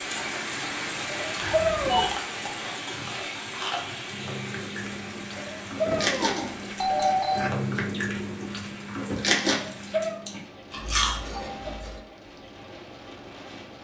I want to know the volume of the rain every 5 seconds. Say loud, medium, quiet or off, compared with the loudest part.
loud, medium, medium.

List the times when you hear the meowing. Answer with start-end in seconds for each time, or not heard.
1.1-2.1, 5.3-6.6, 9.7-10.2.